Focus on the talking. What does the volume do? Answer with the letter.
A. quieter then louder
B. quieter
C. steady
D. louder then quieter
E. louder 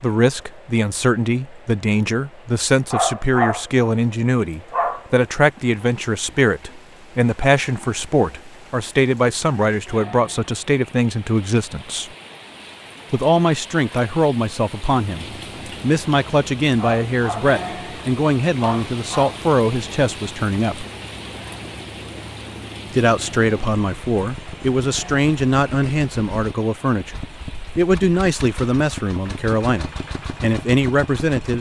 C.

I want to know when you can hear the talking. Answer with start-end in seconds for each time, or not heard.
0.0-12.1, 13.1-20.9, 22.9-31.5.